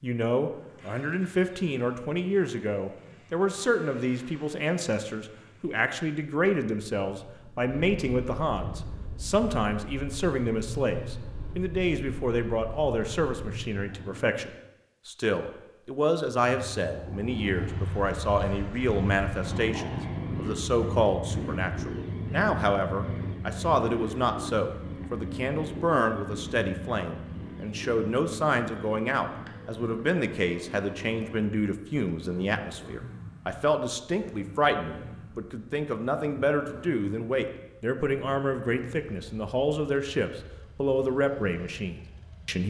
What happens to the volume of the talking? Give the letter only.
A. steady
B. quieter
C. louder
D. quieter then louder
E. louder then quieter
A.